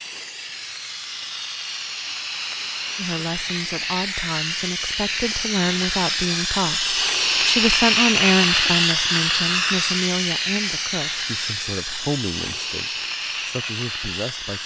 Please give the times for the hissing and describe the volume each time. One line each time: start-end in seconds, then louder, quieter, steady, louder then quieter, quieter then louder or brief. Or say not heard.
0.0-14.6 louder then quieter.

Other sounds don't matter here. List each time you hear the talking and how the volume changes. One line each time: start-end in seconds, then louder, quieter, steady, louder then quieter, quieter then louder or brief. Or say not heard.
3.0-14.6 louder then quieter.